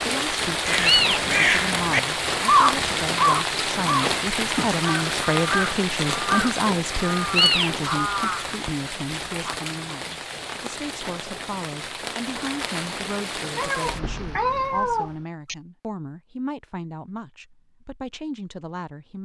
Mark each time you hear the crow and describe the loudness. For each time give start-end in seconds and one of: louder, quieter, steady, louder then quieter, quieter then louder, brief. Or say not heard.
0.6-9.6 quieter.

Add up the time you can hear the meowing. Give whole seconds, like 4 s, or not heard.
3 s.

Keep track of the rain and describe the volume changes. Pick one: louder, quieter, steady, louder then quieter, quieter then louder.
quieter.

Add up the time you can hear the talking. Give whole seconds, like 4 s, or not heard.
19 s.